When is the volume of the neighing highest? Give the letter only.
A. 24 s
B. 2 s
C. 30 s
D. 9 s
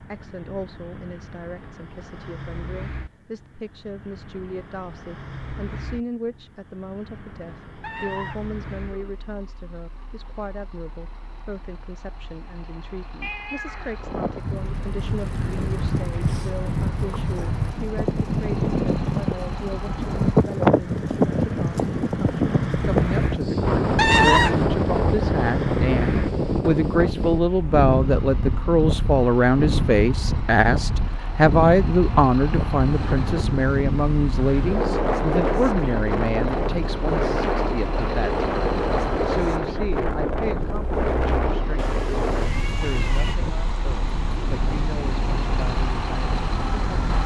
A.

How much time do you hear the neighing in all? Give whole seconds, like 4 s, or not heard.
2 s.